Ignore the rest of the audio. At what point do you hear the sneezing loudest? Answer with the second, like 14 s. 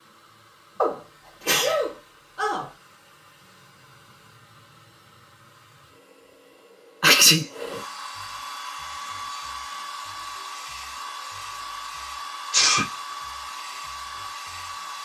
7 s.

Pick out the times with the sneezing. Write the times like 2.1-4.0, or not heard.
0.8-2.7, 7.0-7.5, 12.5-12.9.